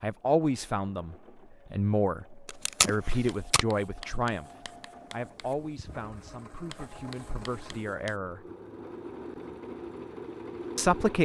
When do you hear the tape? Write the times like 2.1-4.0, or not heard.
2.5-3.6.